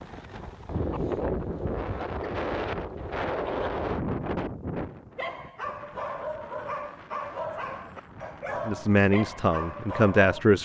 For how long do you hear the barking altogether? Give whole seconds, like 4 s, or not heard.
5 s.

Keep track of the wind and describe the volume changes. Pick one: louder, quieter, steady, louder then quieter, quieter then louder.
quieter.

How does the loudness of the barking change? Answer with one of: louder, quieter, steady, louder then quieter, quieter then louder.
steady.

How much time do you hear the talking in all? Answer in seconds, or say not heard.
2 s.